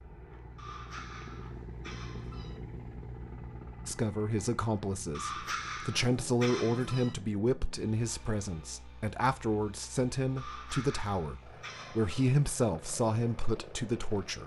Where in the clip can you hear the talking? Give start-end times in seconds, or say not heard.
3.9-14.4.